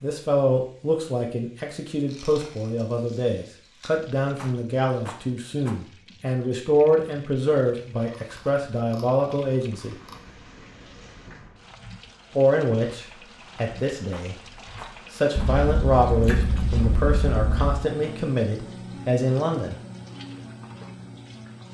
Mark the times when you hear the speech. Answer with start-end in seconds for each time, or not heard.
0.0-9.9, 12.3-14.3, 15.1-19.8.